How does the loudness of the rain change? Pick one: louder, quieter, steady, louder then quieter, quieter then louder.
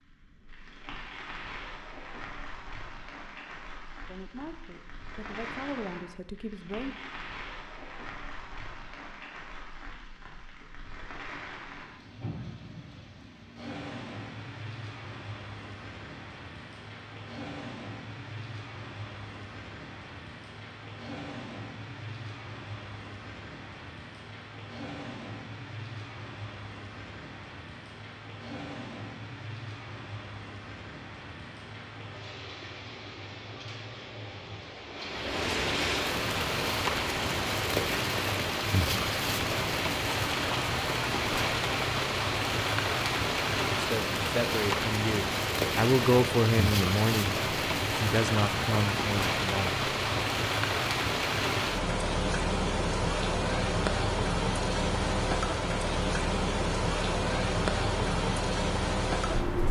louder.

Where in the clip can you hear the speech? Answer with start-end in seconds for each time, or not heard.
4.0-7.0, 43.8-50.2.